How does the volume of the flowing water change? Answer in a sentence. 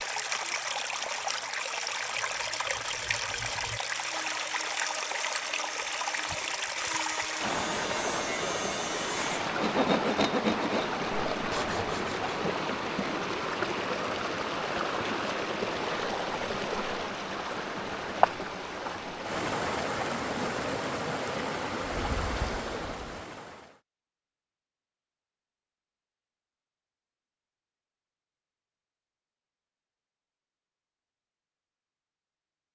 The loudness of the flowing water stays about the same.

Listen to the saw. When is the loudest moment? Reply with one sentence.
The volume of the saw peaks at 10 seconds.